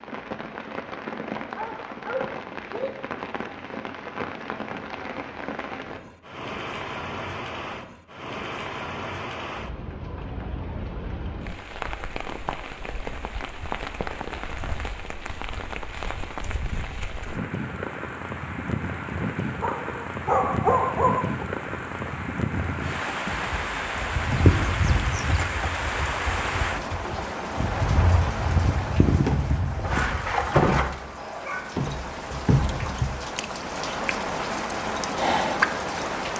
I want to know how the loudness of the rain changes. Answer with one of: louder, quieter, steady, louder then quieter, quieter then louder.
louder.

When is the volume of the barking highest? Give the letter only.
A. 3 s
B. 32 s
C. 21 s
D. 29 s
C.